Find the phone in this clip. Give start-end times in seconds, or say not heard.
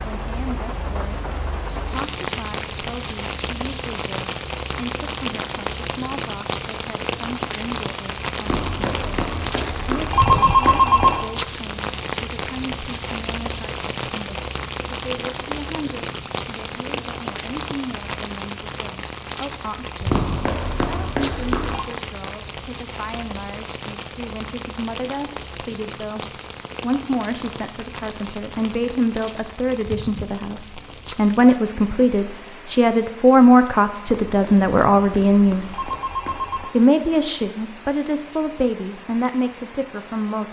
8.4-11.2, 20.1-21.9, 34.0-36.7.